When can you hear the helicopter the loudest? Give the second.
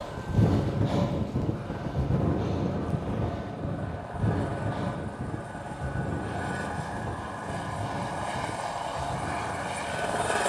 10 s.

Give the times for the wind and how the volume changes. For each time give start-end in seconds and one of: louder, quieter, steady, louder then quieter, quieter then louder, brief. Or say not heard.
0.0-10.4 quieter.